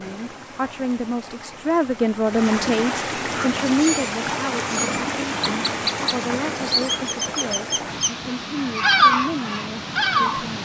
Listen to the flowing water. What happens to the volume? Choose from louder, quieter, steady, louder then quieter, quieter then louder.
louder then quieter.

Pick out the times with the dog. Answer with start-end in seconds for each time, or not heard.
not heard.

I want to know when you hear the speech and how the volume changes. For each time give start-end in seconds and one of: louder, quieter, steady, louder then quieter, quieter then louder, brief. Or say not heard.
0.0-10.5 quieter.